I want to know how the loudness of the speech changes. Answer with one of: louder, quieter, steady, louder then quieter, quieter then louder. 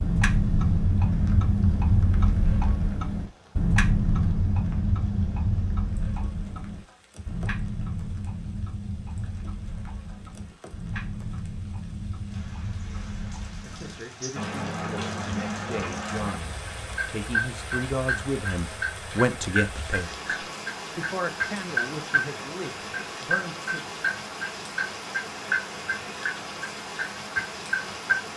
louder then quieter.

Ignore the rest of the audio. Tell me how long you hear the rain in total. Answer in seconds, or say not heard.
28 s.